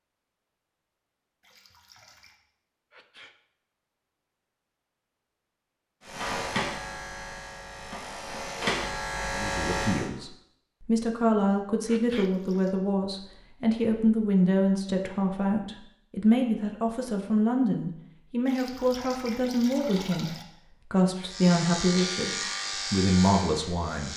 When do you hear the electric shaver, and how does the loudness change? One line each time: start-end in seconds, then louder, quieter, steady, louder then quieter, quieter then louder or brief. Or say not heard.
6.0-10.1 quieter then louder
21.2-24.1 brief.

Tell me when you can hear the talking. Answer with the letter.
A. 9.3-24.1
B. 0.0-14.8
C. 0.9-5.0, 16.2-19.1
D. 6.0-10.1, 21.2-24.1
A.